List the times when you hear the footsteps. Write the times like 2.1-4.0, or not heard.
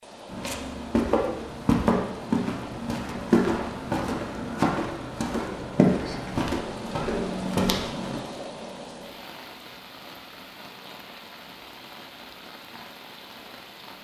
0.3-8.2.